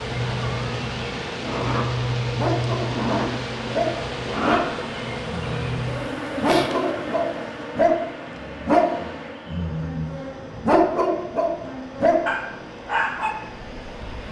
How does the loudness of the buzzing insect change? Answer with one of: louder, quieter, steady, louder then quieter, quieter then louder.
quieter.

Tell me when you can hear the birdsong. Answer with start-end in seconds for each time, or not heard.
not heard.